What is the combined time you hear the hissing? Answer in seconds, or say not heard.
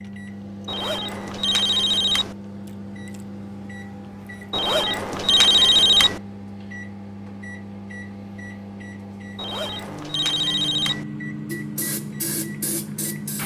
2 s.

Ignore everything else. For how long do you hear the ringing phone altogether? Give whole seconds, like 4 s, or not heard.
5 s.